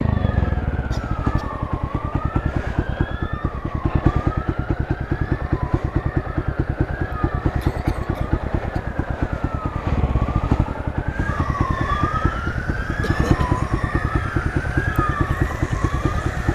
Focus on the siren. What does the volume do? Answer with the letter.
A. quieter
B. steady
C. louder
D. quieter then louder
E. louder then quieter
C.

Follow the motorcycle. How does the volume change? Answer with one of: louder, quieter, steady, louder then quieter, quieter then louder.
steady.